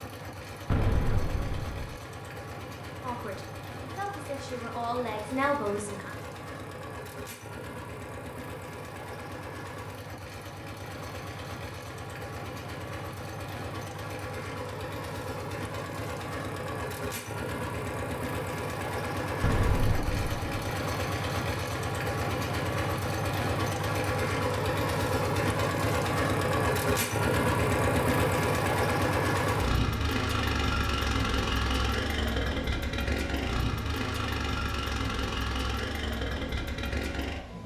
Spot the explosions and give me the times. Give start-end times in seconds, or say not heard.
0.7-2.0, 19.4-20.4.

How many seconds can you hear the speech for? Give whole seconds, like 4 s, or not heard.
3 s.